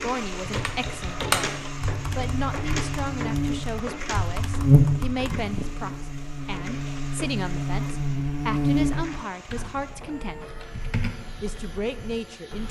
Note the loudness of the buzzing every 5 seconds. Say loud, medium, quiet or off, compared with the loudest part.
loud, loud, off.